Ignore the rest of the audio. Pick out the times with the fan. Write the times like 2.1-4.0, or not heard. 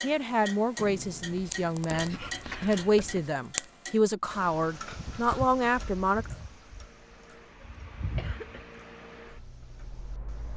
4.9-10.5.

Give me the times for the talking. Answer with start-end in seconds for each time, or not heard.
0.0-6.3.